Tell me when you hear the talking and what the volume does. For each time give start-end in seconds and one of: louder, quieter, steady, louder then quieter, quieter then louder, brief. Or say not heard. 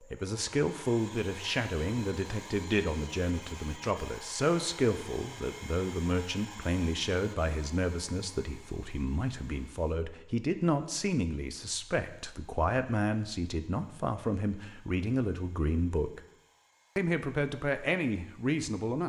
0.0-16.2 steady
16.9-19.0 brief.